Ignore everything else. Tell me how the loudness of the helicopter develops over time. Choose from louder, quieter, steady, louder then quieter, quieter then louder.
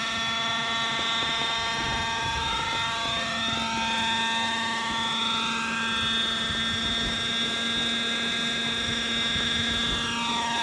steady.